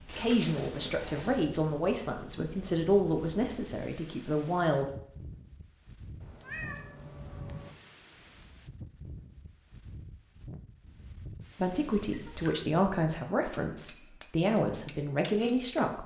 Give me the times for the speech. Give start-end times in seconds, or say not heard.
0.0-4.9, 11.6-16.0.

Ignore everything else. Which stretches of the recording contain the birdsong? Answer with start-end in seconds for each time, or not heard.
not heard.